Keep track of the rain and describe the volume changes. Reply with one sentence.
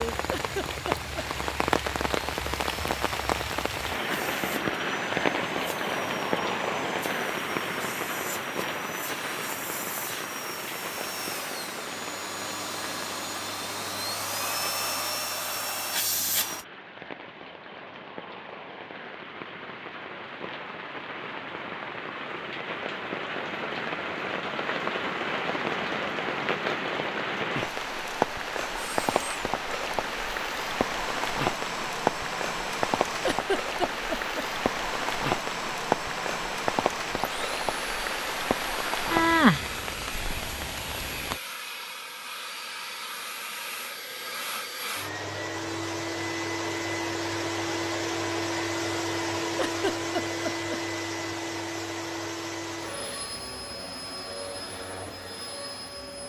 The loudness of the rain goes down, then up.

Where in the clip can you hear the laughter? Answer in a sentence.
You can hear the laughter from 0.3 to 1.2 s, from 33.2 to 34.5 s and from 49.5 to 50.8 s.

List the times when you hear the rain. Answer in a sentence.
The rain can be heard from 0.0 to 41.4 s.